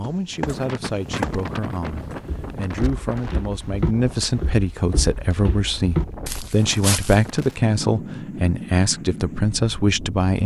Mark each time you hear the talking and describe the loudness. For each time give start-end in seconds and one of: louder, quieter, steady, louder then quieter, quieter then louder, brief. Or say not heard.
0.0-10.4 louder.